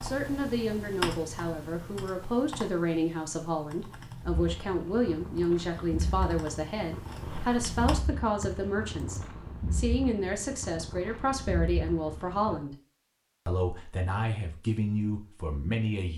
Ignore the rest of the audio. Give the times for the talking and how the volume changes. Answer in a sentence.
The talking can be heard from 0.0 to 12.8 s, at a steady volume; and briefly from 13.4 to 16.1 s.